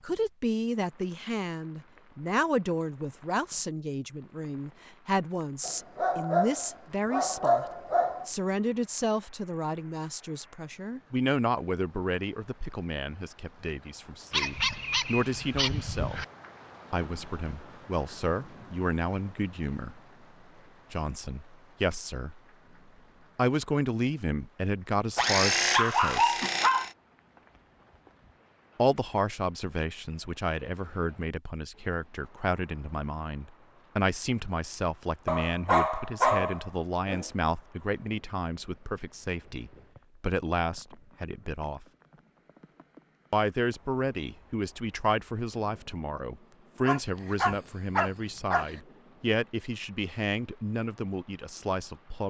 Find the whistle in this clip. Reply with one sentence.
The whistle can't be heard in this clip.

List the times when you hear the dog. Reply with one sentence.
You can hear the dog from 5.7 to 8.2 s, from 14.3 to 16.2 s, from 25.1 to 26.9 s, from 35.2 to 37.2 s and from 46.9 to 48.7 s.